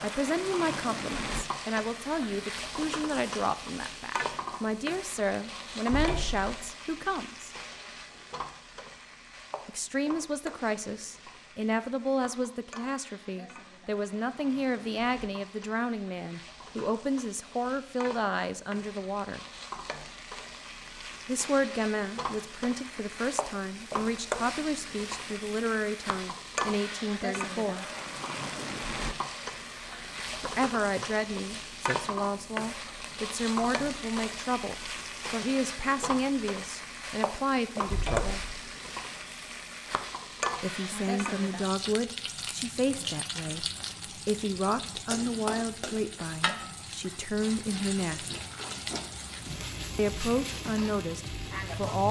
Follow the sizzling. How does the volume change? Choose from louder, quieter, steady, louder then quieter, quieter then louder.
quieter then louder.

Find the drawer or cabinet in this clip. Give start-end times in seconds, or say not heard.
5.9-6.5, 37.9-38.5.